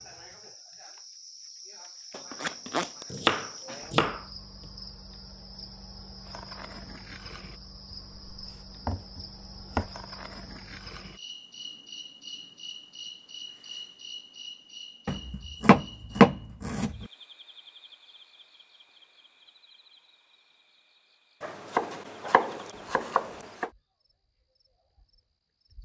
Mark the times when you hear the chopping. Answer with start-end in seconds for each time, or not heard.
2.1-4.2, 7.9-9.9, 15.1-17.1, 21.4-23.7.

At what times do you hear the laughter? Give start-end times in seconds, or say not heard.
not heard.